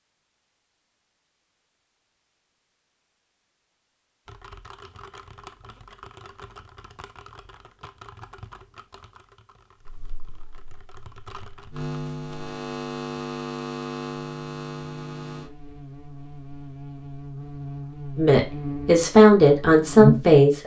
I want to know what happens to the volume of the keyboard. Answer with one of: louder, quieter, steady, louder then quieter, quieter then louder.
quieter then louder.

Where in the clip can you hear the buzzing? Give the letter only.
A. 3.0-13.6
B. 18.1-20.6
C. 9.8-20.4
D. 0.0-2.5
C.